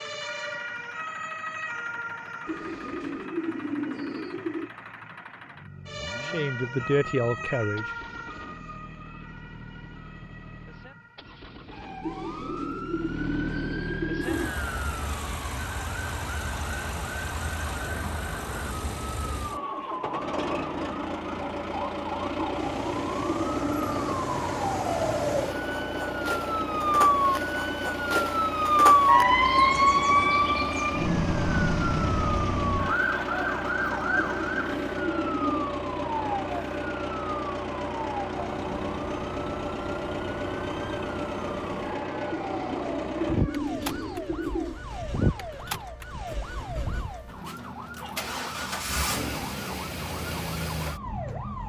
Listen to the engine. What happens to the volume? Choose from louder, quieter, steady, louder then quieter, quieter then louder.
louder.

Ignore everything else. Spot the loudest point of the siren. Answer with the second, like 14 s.
29 s.